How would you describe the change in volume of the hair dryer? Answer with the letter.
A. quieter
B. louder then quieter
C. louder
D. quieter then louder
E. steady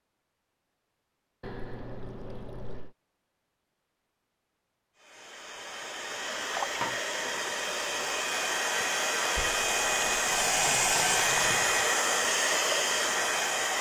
C.